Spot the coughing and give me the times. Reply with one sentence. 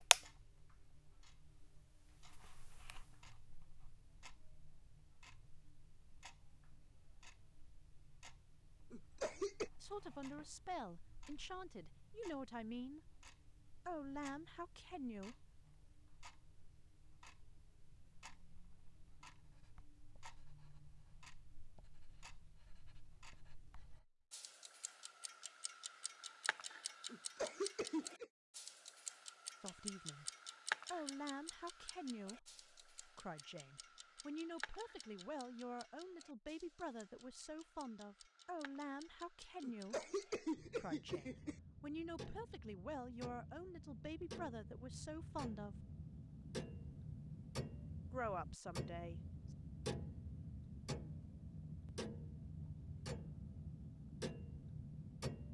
You can hear the coughing from 8.9 to 9.7 s, from 27.1 to 28.2 s and from 39.6 to 41.5 s.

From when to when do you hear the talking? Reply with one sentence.
The talking can be heard from 9.8 to 13.0 s, from 13.8 to 15.5 s, from 29.6 to 30.2 s, from 30.9 to 45.9 s and from 48.1 to 49.2 s.